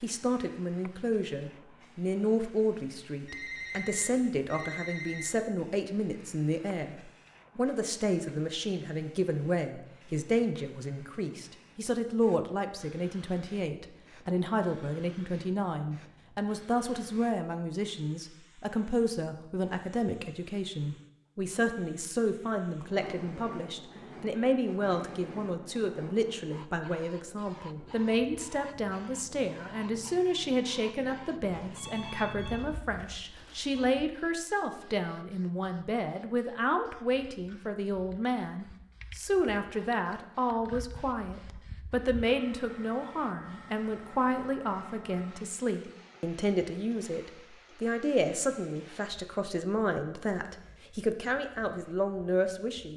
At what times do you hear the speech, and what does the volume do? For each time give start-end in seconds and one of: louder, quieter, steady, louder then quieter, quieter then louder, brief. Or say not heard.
0.0-52.9 steady.